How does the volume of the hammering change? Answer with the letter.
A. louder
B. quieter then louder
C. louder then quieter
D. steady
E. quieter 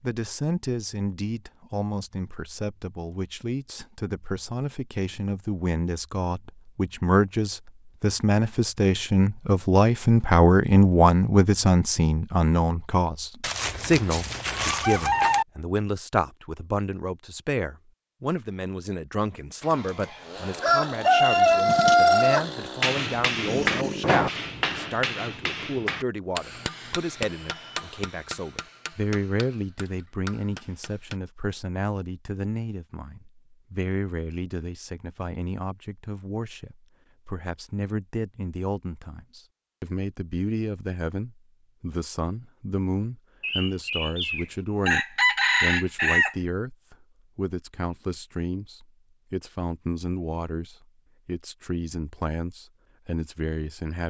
E.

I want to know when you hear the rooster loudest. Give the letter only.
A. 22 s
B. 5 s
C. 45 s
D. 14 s
A.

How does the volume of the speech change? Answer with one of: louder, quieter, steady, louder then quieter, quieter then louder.
quieter.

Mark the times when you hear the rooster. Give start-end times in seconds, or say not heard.
13.4-15.4, 19.7-22.4, 43.4-46.4.